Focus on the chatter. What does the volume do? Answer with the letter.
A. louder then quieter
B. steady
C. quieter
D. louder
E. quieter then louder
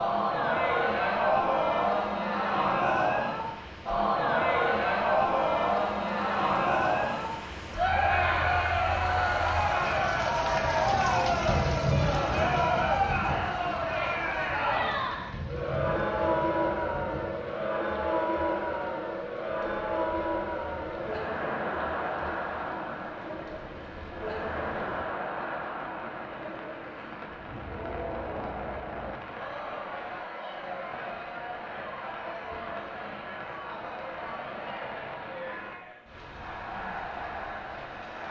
C.